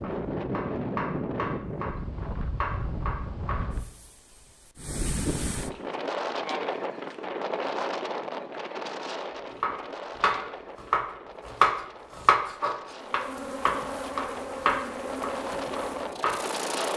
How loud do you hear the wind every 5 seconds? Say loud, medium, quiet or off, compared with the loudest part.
loud, loud, medium, loud.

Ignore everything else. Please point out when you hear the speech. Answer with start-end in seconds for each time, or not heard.
not heard.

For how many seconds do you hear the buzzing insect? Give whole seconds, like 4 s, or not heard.
4 s.